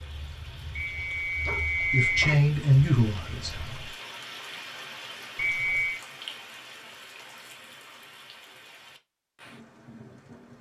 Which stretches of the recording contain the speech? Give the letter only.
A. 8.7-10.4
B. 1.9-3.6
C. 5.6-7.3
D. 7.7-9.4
B.